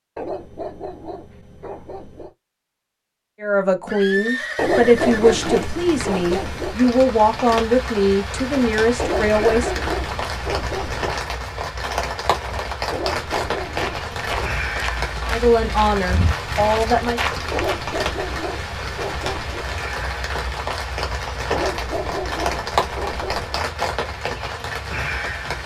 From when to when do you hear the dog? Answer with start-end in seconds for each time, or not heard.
0.1-2.3, 4.5-6.8, 8.9-11.2, 12.9-14.6, 17.5-19.6, 21.5-23.6.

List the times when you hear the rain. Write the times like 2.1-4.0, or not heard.
4.9-25.6.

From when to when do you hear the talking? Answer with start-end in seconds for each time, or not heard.
3.4-9.8, 15.2-17.2.